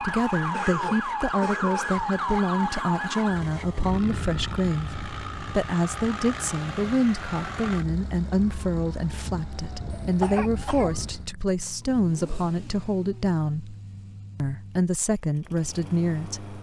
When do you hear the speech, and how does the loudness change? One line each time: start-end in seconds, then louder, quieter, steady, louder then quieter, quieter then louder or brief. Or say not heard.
0.0-13.8 steady
14.3-16.5 brief.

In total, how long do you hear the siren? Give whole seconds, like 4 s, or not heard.
11 s.